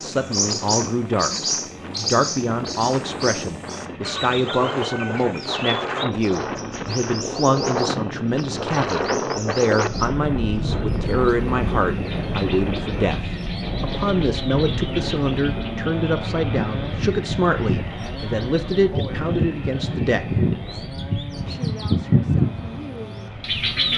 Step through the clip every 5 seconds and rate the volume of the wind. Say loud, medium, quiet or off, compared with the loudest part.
medium, loud, loud, medium, quiet.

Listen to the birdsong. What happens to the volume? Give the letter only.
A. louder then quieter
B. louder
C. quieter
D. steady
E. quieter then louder
E.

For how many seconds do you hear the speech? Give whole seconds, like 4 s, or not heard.
24 s.